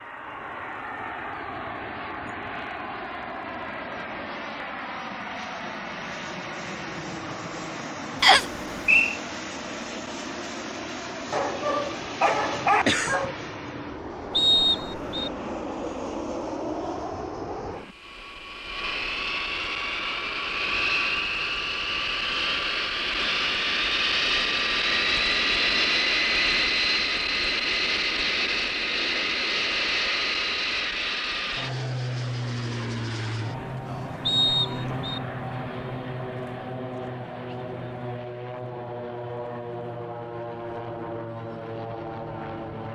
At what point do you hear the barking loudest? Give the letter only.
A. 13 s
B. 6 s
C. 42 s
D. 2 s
A.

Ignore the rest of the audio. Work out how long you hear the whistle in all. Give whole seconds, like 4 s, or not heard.
3 s.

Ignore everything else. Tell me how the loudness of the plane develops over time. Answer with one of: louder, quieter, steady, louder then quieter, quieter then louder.
louder then quieter.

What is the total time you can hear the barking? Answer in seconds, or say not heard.
2 s.